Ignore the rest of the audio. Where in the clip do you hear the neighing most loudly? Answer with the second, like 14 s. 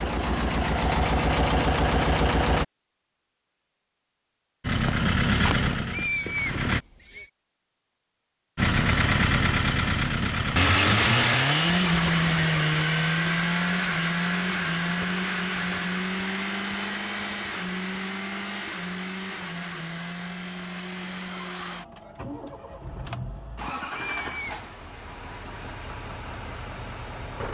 6 s.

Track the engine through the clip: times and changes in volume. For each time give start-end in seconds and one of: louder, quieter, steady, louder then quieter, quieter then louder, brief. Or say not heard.
0.0-2.6 brief
4.6-6.8 brief
8.6-27.4 quieter.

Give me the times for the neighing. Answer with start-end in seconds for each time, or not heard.
5.7-7.3, 14.9-15.8, 23.6-24.6.